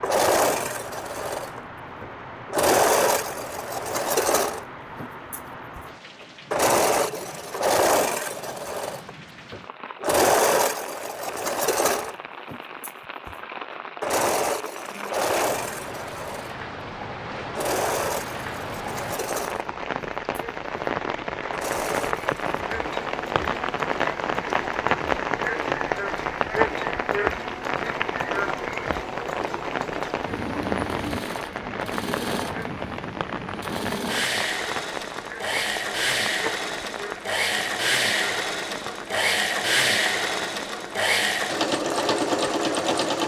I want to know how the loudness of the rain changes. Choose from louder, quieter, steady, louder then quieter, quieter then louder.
louder then quieter.